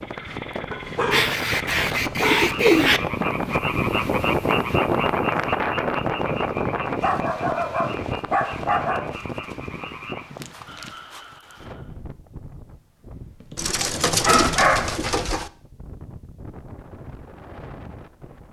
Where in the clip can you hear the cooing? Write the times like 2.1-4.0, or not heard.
1.1-3.0, 13.6-15.5.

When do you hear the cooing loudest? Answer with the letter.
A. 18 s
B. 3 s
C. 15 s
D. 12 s
B.